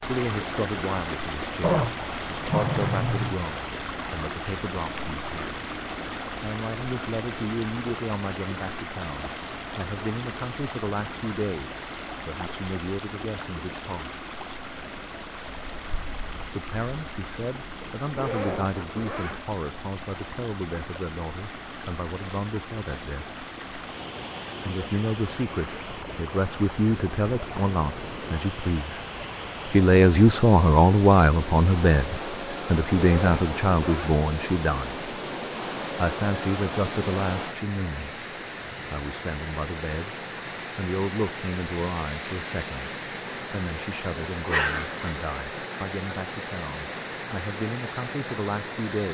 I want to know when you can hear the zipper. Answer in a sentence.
You can hear the zipper from 18.1 to 19.4 s and from 32.9 to 34.2 s.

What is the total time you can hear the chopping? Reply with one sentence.
The chopping can't be heard in this clip.